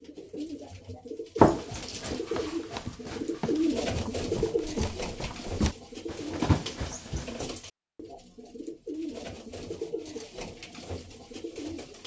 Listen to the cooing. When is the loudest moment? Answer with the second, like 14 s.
4 s.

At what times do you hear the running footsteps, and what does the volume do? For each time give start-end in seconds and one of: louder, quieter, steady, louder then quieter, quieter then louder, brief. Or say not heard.
1.4-7.4 louder.